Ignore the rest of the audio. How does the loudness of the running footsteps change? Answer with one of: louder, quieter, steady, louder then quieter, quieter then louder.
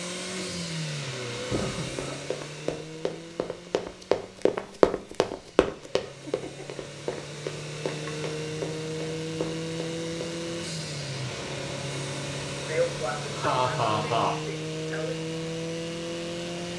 louder then quieter.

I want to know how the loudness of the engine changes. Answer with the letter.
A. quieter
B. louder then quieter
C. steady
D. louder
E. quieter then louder
E.